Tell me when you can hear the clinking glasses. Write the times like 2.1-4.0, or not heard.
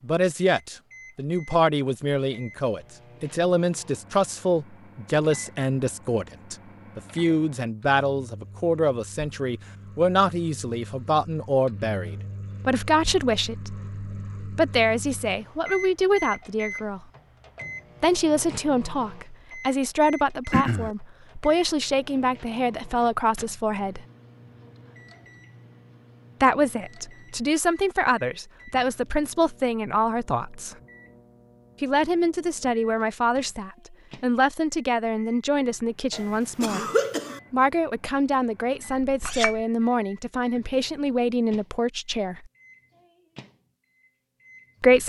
39.0-39.6.